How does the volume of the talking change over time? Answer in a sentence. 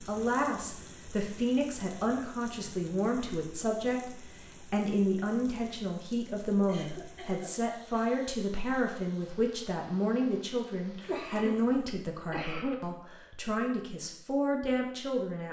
The loudness of the talking stays about the same.